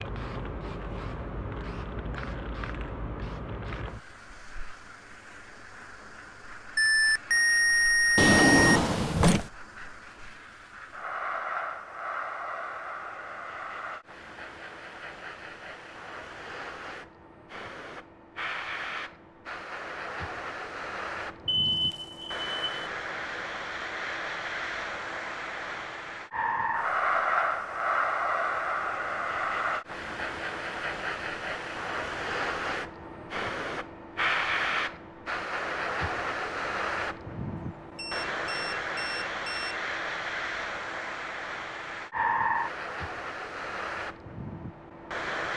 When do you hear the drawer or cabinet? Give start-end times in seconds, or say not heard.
8.2-9.5.